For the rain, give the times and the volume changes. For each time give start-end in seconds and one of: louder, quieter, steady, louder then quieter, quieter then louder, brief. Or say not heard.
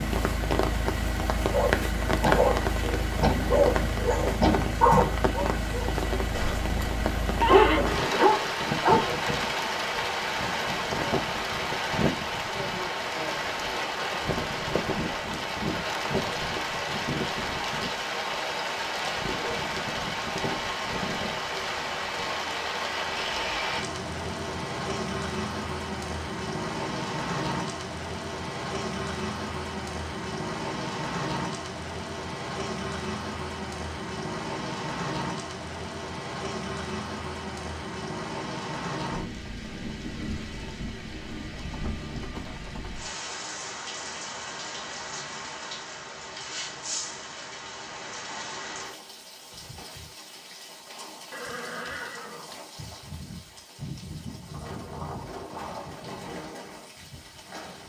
0.0-57.8 quieter.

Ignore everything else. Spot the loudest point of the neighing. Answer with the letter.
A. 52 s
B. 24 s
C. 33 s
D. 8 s
D.